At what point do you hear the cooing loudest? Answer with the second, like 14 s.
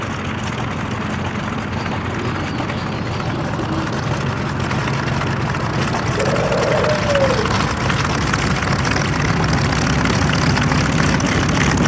7 s.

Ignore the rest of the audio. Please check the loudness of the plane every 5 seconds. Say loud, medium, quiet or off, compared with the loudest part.
medium, loud, loud.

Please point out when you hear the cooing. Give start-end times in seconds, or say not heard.
1.9-4.0, 6.2-7.4.